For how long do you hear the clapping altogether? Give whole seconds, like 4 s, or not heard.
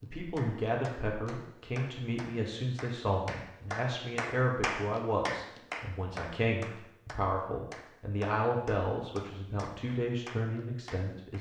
11 s.